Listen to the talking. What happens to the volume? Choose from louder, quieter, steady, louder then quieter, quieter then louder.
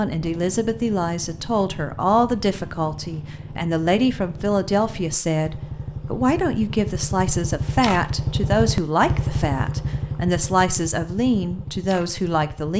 steady.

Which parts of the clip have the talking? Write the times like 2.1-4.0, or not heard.
0.0-12.7.